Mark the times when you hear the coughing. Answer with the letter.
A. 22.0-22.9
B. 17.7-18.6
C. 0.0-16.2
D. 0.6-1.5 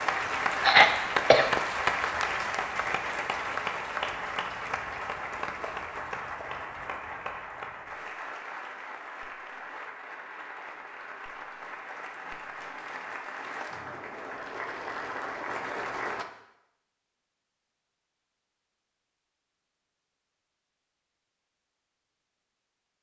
D.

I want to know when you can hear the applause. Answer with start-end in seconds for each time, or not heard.
0.0-16.2.